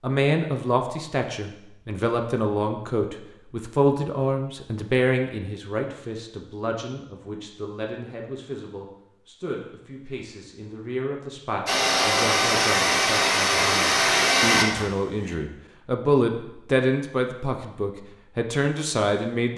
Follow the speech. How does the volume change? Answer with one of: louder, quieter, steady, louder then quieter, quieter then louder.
quieter then louder.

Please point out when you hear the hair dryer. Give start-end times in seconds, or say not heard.
11.7-15.3.